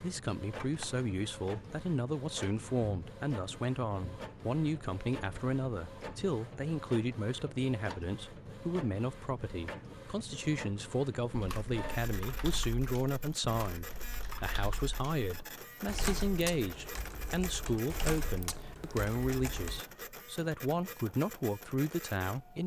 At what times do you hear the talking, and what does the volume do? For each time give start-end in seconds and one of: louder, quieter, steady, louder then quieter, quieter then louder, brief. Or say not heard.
0.0-22.6 steady.